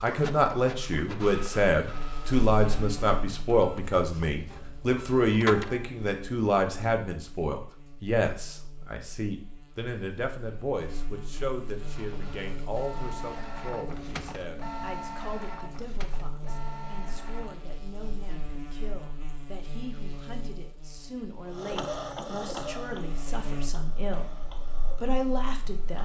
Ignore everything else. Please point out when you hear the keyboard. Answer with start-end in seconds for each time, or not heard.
not heard.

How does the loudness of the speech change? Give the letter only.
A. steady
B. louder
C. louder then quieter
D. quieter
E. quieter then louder
E.